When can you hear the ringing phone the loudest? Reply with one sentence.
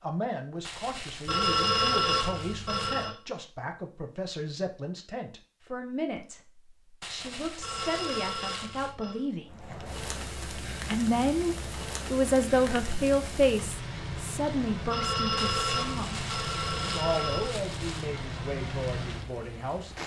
The volume of the ringing phone peaks at 2 seconds.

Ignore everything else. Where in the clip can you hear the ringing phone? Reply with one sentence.
The ringing phone can be heard from 1.2 to 3.1 s, from 7.6 to 9.2 s and from 14.8 to 17.6 s.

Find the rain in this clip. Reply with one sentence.
You can hear the rain from 9.4 to 20.0 s.